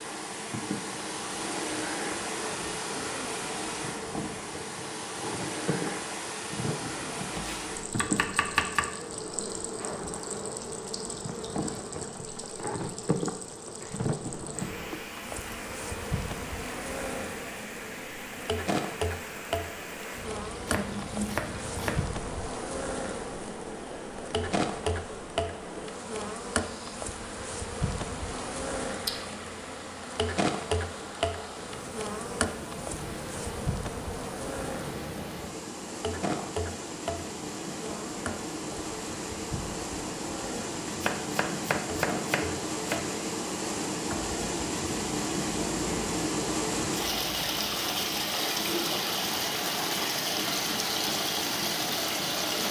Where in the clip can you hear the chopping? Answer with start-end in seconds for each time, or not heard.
7.3-8.9, 20.6-22.1, 40.9-43.0.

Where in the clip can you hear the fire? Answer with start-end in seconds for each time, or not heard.
not heard.